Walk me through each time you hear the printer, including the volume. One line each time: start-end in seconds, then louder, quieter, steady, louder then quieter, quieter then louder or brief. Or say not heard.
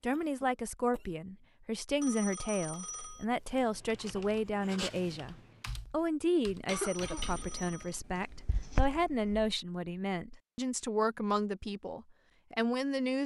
not heard.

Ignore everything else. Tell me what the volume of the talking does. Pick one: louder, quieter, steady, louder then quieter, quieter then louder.
steady.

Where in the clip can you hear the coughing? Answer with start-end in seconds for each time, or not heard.
0.1-1.2, 6.7-7.5.